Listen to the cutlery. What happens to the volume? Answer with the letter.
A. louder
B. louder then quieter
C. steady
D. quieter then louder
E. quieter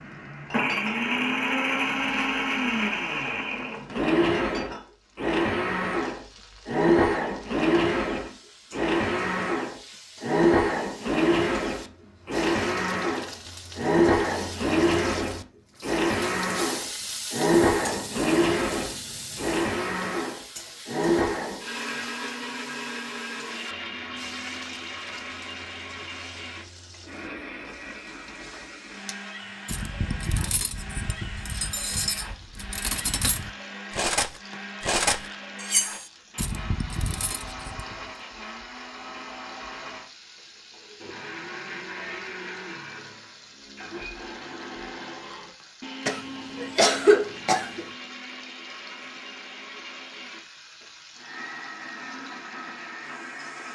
B.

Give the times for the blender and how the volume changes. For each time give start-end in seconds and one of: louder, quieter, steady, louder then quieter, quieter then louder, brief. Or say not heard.
0.0-53.7 quieter.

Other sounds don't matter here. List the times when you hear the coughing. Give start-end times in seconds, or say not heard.
46.0-47.9.